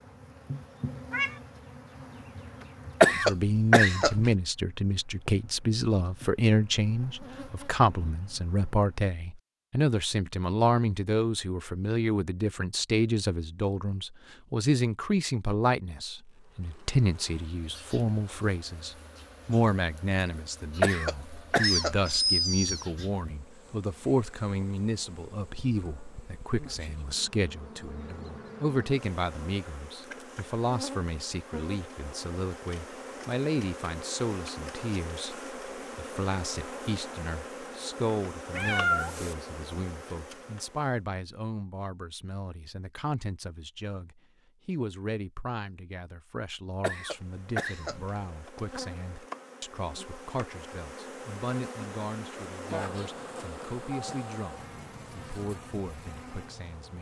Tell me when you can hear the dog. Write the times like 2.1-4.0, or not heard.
not heard.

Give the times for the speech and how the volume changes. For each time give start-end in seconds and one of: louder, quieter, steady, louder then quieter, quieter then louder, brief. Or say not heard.
3.1-56.9 quieter.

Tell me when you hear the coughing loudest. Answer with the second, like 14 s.
3 s.